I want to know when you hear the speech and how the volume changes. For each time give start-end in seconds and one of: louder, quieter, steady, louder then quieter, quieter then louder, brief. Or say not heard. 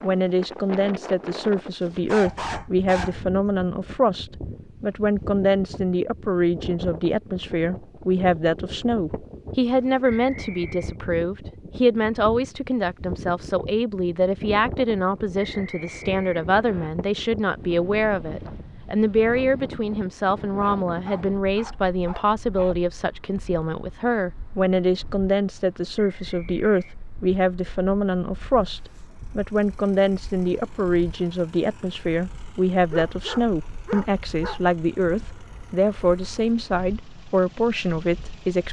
0.0-38.6 steady.